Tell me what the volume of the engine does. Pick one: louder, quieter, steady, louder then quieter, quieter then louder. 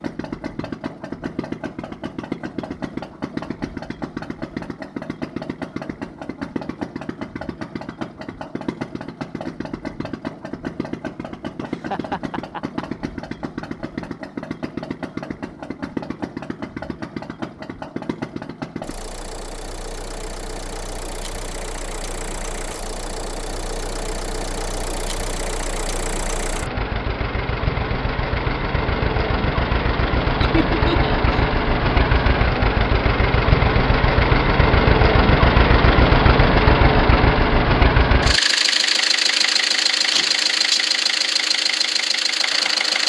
louder.